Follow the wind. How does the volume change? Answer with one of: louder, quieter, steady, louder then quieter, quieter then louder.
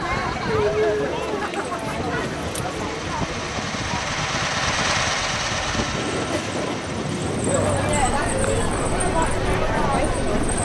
louder.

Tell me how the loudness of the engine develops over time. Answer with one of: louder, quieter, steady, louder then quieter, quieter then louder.
louder then quieter.